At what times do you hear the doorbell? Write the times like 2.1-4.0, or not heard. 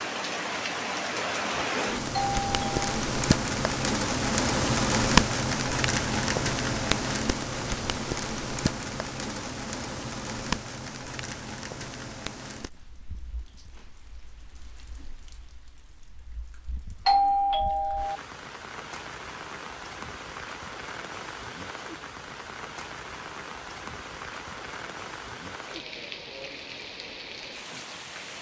2.1-2.9, 17.1-18.2.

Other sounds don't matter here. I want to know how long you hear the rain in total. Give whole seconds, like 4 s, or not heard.
28 s.